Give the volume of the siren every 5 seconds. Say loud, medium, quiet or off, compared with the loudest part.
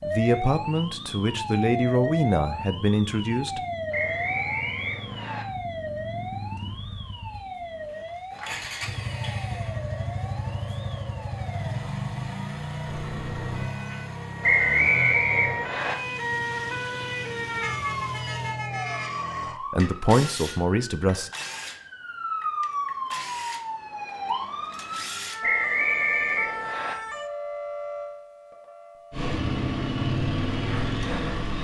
loud, medium, medium, loud, loud, loud, off.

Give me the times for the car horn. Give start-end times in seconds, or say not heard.
12.8-13.8, 17.6-19.1.